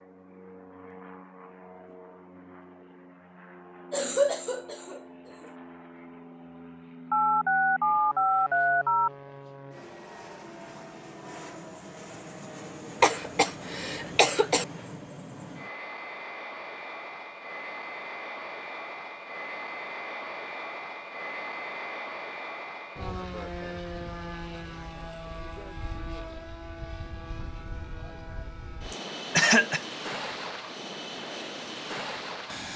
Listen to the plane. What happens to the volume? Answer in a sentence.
The loudness of the plane goes up.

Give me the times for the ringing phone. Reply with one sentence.
The ringing phone can be heard from 7.1 to 9.1 s.